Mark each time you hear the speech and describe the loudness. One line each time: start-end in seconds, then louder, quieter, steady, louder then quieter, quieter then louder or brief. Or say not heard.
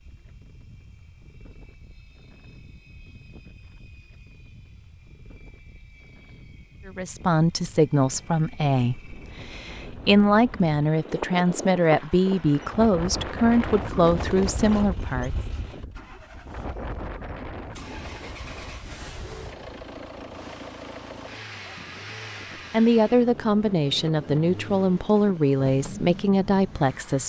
6.8-15.3 steady
22.7-27.2 steady.